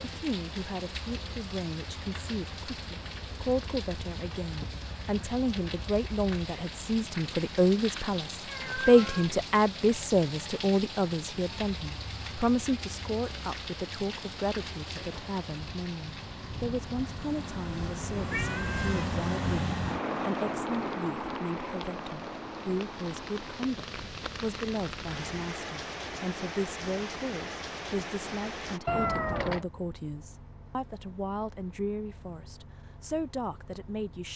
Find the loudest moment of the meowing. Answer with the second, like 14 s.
29 s.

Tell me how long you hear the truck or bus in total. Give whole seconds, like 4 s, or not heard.
34 s.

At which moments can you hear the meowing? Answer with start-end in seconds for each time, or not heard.
8.4-9.3, 18.3-19.1, 28.9-29.6.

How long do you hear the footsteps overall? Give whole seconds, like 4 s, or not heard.
not heard.